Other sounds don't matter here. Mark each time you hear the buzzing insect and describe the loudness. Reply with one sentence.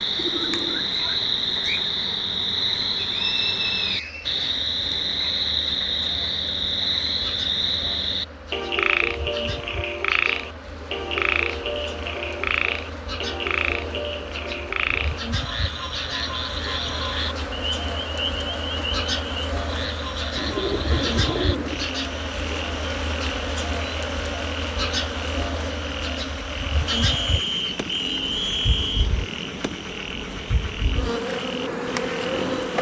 The buzzing insect can be heard from 0.0 to 32.7 s, getting louder.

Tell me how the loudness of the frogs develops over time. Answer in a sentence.
The loudness of the frogs goes down.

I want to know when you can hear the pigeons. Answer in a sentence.
You can hear the pigeons from 0.1 to 1.9 s and from 20.4 to 21.9 s.